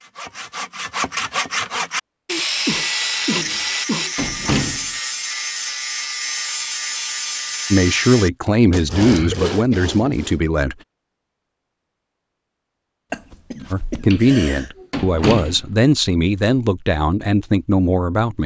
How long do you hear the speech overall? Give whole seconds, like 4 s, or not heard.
8 s.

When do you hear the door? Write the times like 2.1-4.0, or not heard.
3.4-4.8, 14.1-15.6.